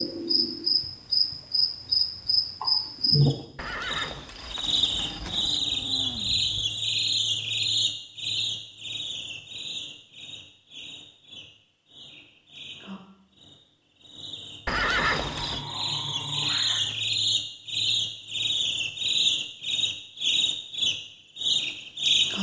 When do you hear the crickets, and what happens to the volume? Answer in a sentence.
The crickets can be heard from 0.0 to 22.3 s, getting quieter then louder.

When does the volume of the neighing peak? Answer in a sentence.
The volume of the neighing peaks at 15 seconds.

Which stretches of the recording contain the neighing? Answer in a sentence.
The neighing can be heard from 3.5 to 5.6 s and from 14.7 to 15.7 s.